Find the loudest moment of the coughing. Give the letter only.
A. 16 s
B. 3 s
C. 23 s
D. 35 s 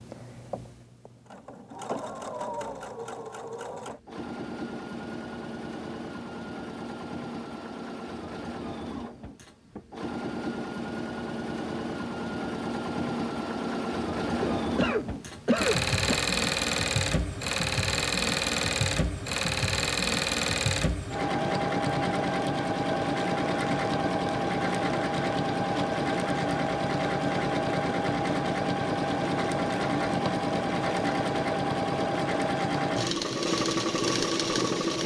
A.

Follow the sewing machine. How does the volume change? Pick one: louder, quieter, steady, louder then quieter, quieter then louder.
louder.